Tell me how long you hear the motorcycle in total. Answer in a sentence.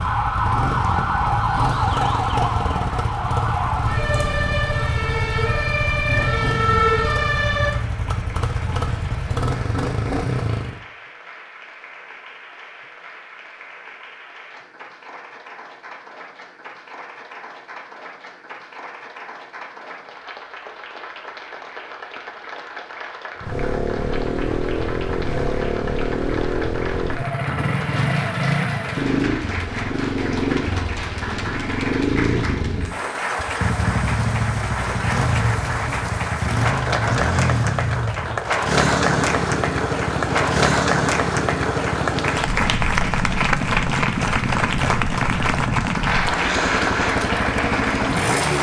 The motorcycle can be heard for 36 seconds in total.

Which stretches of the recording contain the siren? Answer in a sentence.
The siren can be heard from 0.0 to 7.8 s.